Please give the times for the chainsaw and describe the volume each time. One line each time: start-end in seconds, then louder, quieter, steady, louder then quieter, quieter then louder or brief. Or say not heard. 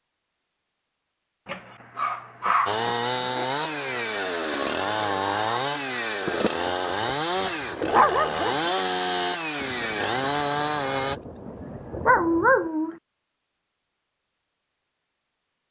2.6-11.2 steady.